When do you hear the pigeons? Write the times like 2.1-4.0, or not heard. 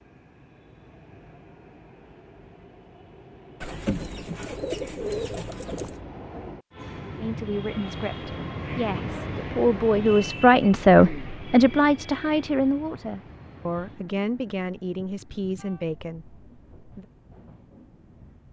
3.6-6.0.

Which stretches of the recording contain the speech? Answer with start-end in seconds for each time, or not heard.
7.2-17.1.